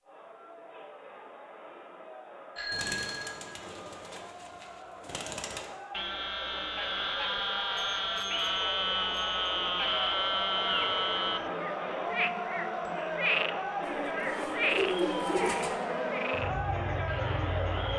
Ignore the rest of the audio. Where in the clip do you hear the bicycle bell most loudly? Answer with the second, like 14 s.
3 s.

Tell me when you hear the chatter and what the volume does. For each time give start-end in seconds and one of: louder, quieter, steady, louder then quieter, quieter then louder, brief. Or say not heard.
0.0-17.9 louder.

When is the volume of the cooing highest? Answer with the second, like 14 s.
15 s.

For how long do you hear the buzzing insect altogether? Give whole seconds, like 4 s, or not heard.
7 s.